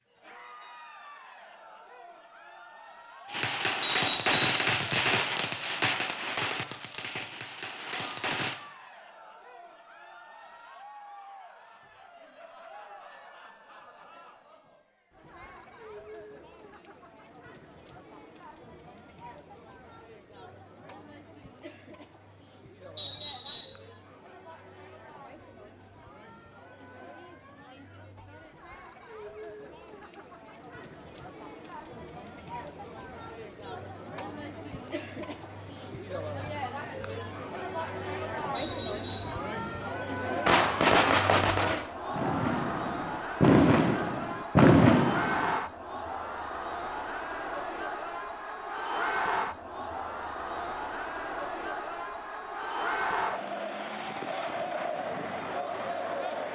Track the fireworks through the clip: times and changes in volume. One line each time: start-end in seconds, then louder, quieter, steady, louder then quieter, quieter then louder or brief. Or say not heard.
3.2-8.6 quieter
40.5-45.5 quieter then louder.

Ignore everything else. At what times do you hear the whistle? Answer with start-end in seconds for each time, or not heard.
3.8-4.7, 22.9-23.8, 38.5-39.4.